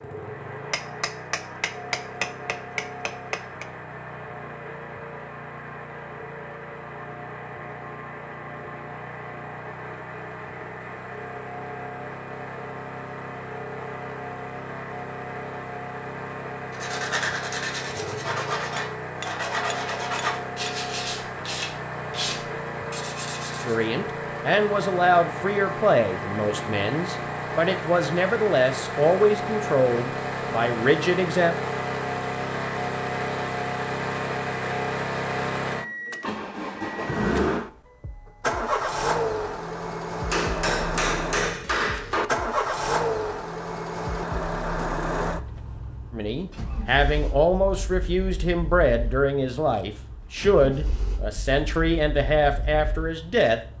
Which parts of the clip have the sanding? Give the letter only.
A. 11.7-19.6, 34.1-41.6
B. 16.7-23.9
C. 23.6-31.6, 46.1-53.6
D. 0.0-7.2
B.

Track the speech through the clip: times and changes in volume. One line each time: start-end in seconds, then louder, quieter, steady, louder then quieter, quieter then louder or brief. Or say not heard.
23.6-31.6 steady
46.1-53.6 steady.